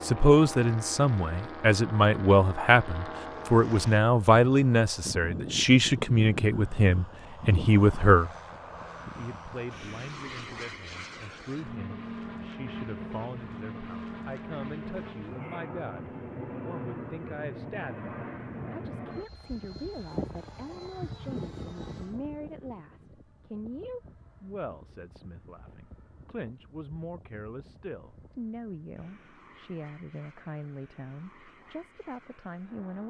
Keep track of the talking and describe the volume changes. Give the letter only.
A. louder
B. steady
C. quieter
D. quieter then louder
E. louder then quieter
C.